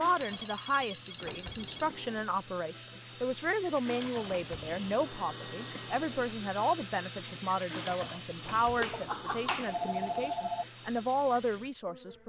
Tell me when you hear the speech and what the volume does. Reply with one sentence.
You can hear the speech from 0.0 to 12.2 s, at a steady volume.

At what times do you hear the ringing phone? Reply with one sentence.
The ringing phone can be heard from 0.2 to 1.9 s, from 5.1 to 5.9 s and from 8.8 to 10.7 s.